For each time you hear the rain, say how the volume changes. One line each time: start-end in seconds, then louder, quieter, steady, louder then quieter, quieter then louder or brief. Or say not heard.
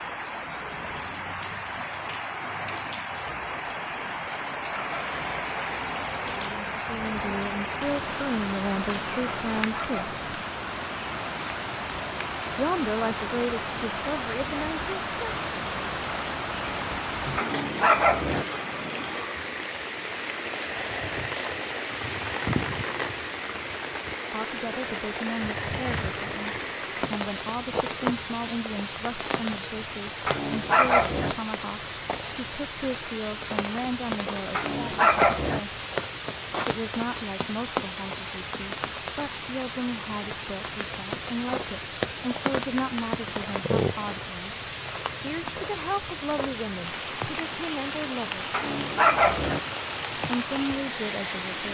0.0-51.6 steady.